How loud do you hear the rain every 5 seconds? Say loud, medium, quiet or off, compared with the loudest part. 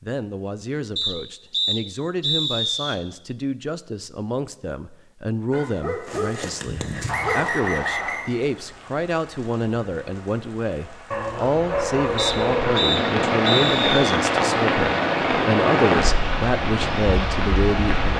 off, quiet, loud, loud.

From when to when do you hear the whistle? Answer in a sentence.
You can hear the whistle from 0.9 to 3.0 s, from 7.0 to 8.3 s and from 12.2 to 14.2 s.